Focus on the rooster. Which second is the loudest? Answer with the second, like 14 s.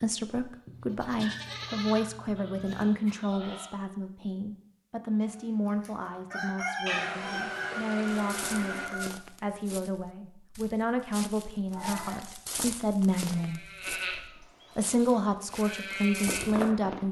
7 s.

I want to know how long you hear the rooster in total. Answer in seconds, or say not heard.
4 s.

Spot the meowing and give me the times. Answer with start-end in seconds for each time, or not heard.
0.7-2.9, 6.8-8.8, 11.7-12.2.